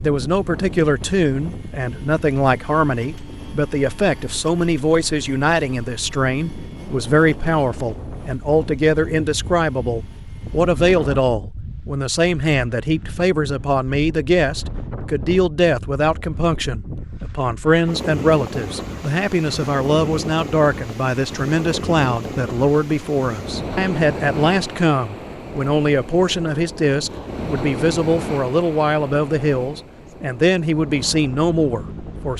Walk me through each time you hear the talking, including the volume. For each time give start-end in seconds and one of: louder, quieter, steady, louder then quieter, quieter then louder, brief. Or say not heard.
0.0-32.3 steady.